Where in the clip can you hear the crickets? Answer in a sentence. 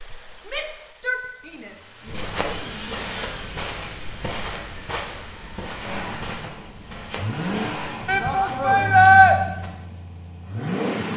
The crickets can't be heard in this clip.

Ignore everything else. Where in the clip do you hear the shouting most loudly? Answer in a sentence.
The volume of the shouting peaks at 9 seconds.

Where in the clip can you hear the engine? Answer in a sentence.
The engine can be heard from 0.0 to 11.1 s.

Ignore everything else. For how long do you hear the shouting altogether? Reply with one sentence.
The shouting can be heard for 4 seconds in total.